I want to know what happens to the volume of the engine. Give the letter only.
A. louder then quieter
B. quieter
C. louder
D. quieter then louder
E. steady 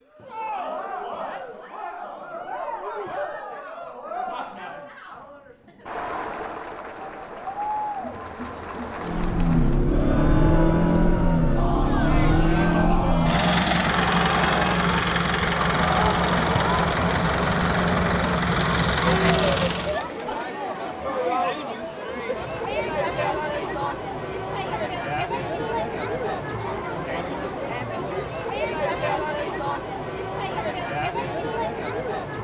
E.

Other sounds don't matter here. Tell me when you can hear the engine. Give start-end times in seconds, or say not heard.
9.0-20.0.